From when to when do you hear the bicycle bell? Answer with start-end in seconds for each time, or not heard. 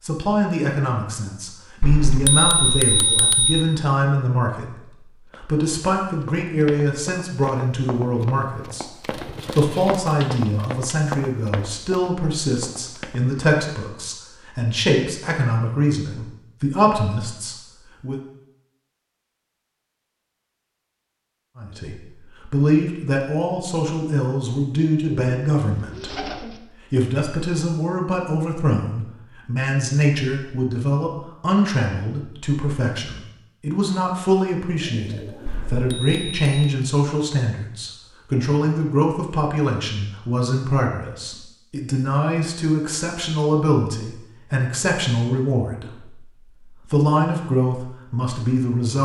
1.8-3.6, 35.5-36.5.